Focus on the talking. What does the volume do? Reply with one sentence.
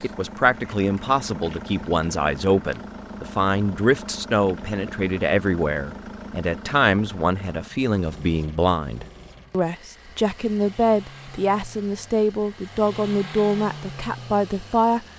The loudness of the talking stays about the same.